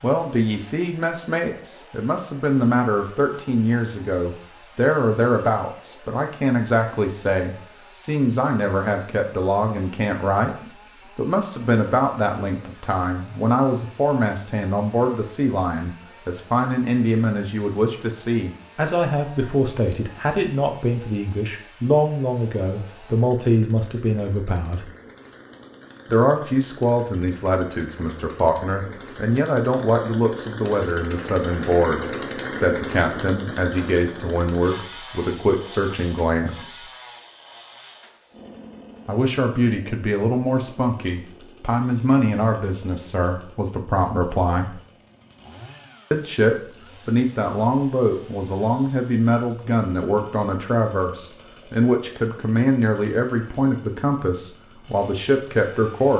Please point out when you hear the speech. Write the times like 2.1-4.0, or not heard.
0.0-24.9, 26.1-36.8, 39.0-44.8, 46.1-56.1.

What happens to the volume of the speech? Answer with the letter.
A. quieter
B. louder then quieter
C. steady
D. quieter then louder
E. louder
C.